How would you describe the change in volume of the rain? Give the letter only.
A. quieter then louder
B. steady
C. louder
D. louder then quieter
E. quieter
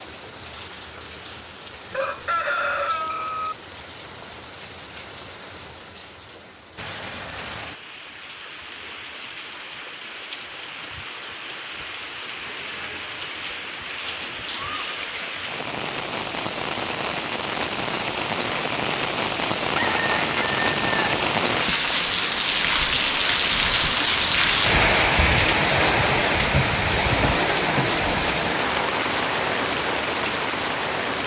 C.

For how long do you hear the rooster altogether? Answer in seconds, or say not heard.
3 s.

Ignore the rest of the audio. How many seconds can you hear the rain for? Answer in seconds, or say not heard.
31 s.